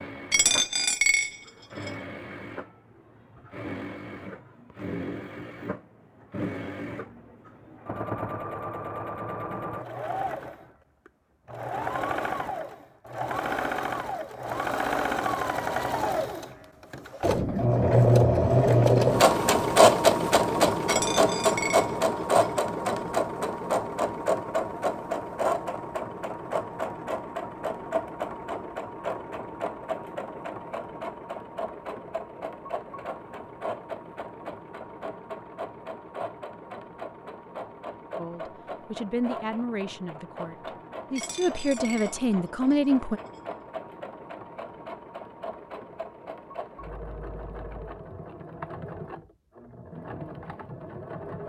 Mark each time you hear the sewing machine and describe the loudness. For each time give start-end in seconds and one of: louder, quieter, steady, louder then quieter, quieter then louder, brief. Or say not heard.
0.0-51.4 louder then quieter.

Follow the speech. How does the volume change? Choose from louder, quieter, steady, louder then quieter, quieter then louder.
quieter then louder.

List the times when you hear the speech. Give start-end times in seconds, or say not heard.
38.1-43.2.